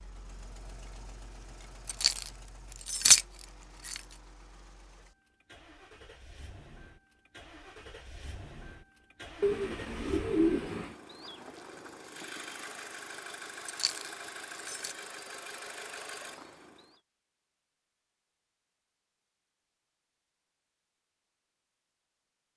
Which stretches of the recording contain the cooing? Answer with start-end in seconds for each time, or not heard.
9.4-10.9.